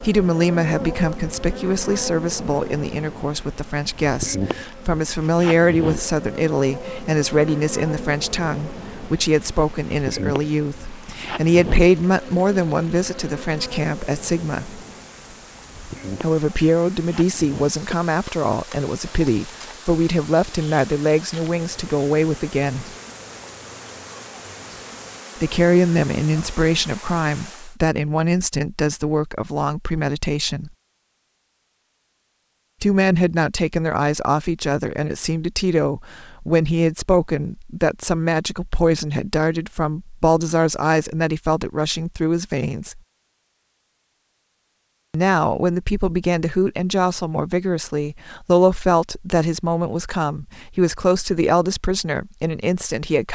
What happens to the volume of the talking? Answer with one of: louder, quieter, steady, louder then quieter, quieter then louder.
steady.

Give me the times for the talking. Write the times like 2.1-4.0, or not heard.
0.0-14.8, 16.2-22.9, 25.4-30.7, 32.8-43.0, 45.1-53.3.